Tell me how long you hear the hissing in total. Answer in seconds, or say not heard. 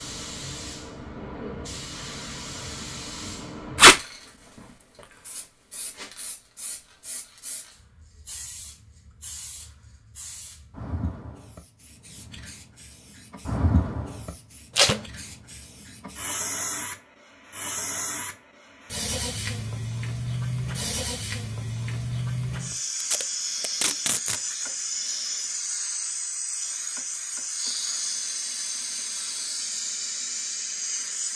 31 s.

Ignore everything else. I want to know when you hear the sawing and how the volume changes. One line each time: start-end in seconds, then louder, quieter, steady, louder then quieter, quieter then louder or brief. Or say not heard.
not heard.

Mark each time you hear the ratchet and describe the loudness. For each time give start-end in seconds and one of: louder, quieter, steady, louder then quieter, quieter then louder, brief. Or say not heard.
not heard.